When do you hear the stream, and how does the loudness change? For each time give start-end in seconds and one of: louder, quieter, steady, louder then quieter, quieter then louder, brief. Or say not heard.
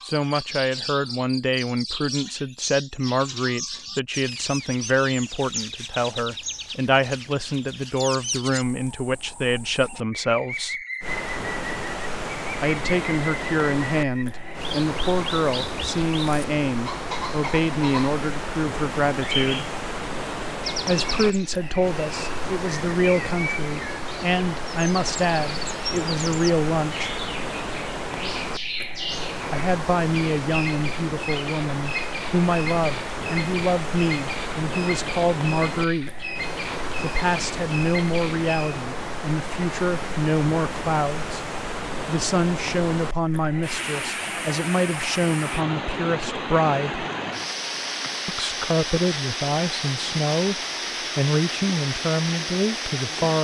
11.0-53.3 steady.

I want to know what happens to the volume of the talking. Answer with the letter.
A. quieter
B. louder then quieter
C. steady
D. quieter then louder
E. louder
C.